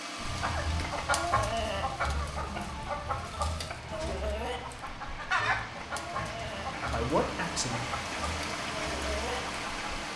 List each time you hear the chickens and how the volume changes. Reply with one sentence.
You can hear the chickens from 0.1 to 10.0 s, getting quieter.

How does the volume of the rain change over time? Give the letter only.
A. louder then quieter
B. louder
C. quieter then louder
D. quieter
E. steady
B.